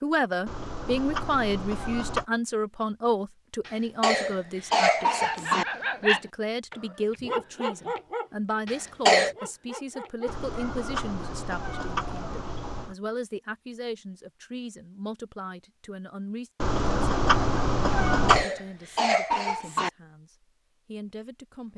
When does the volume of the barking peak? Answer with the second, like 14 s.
6 s.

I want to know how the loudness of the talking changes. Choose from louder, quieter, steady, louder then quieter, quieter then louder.
quieter.